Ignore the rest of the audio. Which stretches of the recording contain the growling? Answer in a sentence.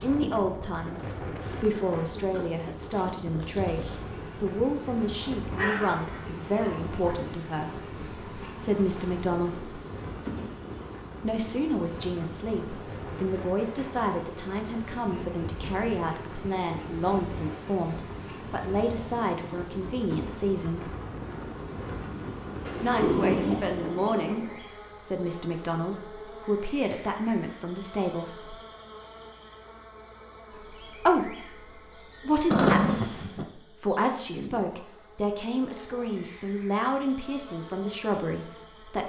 The growling can be heard from 5.5 to 7.0 s, from 22.6 to 23.7 s and from 32.5 to 33.5 s.